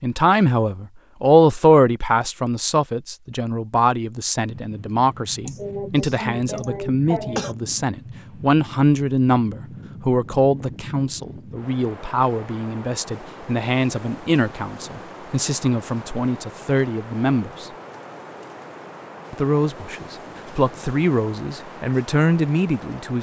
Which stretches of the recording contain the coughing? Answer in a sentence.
You can hear the coughing from 5.5 to 7.5 s.